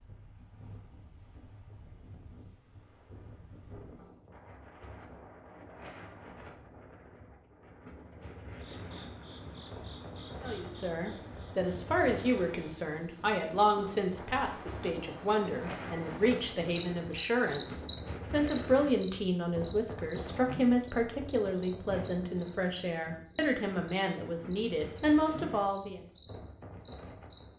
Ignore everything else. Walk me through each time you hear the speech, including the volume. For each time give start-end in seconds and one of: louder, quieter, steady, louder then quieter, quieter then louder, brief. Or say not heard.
10.4-26.0 steady.